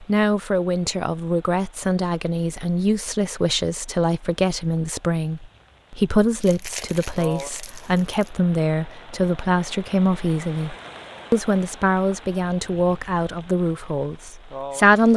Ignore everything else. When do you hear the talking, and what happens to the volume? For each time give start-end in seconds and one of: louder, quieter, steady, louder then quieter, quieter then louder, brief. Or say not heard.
0.0-15.1 steady.